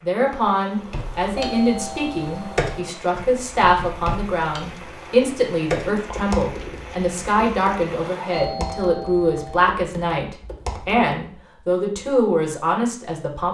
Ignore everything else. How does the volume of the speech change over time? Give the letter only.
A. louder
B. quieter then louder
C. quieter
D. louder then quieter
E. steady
E.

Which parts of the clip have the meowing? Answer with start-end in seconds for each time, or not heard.
not heard.